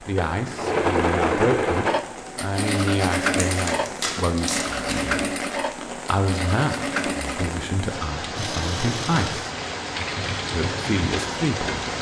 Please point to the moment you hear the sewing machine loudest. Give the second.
1 s.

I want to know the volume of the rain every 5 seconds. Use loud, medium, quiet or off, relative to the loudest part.
medium, loud, loud.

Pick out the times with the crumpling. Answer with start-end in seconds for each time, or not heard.
3.4-5.1.